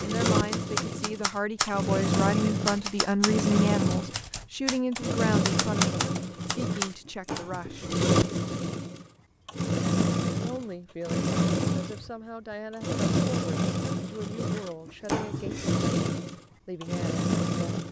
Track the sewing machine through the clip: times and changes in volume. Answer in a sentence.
The sewing machine can be heard from 0.0 to 17.8 s, at a steady volume.